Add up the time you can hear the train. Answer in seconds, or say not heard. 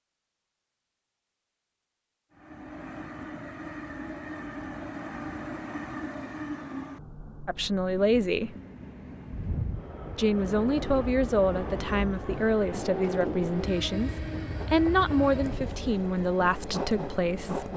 15 s.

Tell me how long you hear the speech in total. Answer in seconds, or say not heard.
9 s.